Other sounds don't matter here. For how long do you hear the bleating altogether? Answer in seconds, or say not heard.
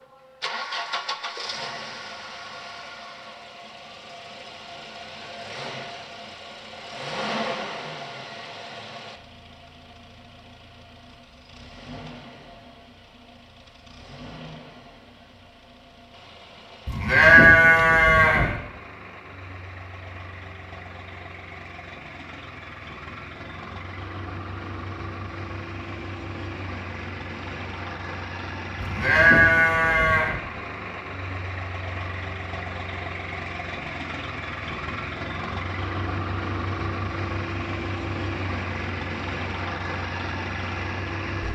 3 s.